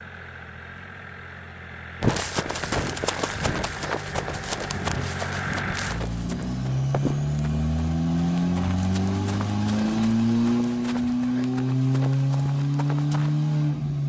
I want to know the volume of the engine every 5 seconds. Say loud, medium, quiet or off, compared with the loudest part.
quiet, loud, loud.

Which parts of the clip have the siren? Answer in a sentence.
You can't hear the siren here.